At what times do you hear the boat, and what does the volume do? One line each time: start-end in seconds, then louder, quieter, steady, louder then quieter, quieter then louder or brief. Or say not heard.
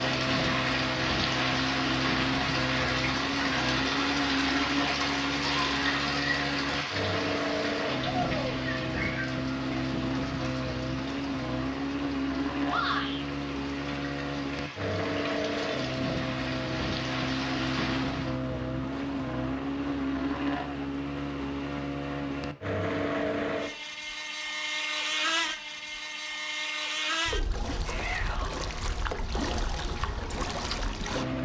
0.0-31.4 steady.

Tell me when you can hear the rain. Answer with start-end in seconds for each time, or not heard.
0.0-18.4.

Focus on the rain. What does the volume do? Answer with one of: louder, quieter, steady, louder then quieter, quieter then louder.
quieter then louder.